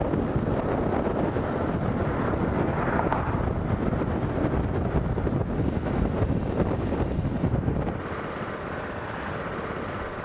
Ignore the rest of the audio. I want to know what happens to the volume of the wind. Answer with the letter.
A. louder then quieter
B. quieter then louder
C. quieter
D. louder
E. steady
C.